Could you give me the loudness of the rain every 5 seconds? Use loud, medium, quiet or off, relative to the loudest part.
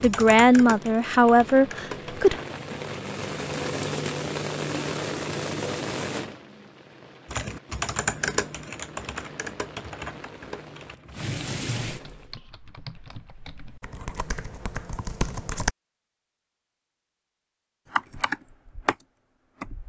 loud, loud, loud, off.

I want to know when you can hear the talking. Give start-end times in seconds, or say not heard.
0.0-2.4.